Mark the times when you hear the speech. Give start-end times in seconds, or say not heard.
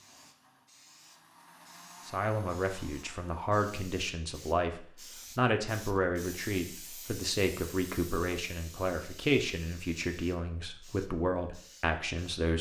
2.0-12.5.